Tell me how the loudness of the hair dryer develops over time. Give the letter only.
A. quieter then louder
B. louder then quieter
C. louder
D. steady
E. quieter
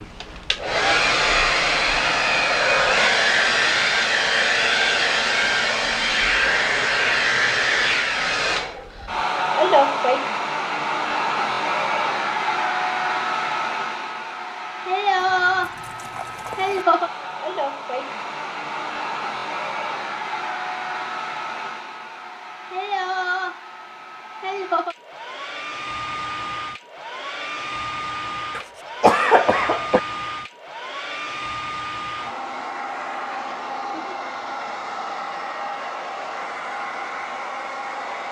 E.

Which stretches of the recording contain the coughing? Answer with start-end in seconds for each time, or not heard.
28.6-30.0.